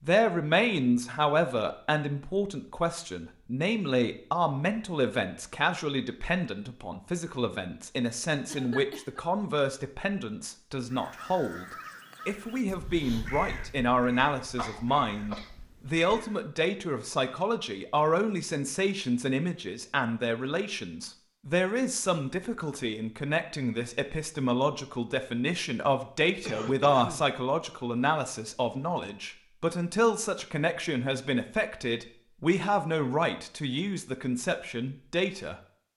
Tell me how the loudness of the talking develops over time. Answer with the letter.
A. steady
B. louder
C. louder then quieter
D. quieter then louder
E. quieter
A.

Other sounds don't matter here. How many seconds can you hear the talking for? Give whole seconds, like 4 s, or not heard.
35 s.